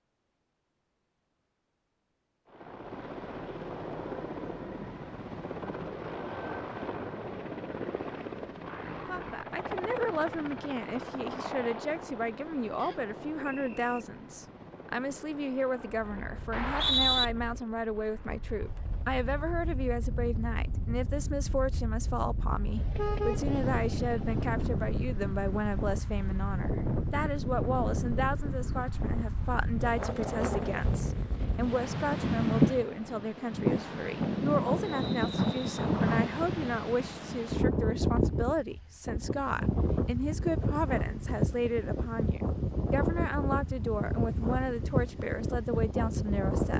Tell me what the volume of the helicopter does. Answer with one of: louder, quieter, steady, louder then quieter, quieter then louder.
quieter.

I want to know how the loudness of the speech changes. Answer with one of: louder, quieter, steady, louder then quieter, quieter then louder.
steady.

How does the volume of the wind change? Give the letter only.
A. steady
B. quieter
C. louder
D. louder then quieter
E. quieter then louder
C.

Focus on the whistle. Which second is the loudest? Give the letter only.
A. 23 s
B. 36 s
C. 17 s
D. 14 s
C.